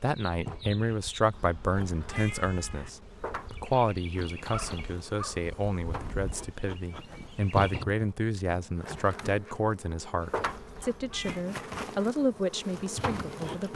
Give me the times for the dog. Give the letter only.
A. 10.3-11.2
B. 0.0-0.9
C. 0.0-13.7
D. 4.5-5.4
D.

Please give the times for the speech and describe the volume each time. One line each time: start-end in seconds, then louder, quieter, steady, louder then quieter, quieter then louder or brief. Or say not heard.
0.0-13.7 steady.